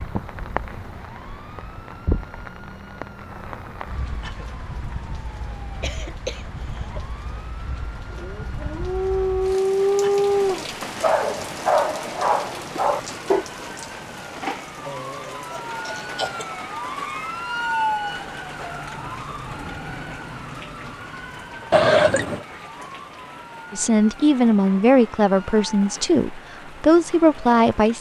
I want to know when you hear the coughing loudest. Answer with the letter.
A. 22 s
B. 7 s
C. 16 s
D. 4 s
A.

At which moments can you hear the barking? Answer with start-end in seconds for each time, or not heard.
8.1-13.4.